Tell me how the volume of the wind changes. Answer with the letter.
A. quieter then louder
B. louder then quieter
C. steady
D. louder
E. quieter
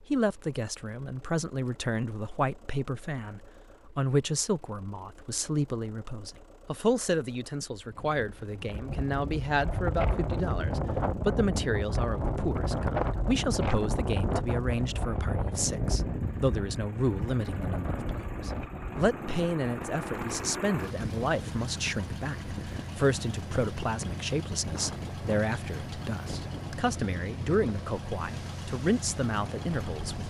E.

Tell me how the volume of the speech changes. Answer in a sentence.
The volume of the speech stays about the same.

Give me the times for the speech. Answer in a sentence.
You can hear the speech from 0.1 to 30.2 s.